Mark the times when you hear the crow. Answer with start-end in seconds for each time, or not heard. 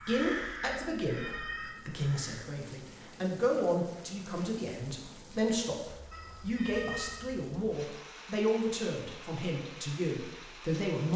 0.0-2.5.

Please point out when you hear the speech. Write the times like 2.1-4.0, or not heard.
0.0-11.1.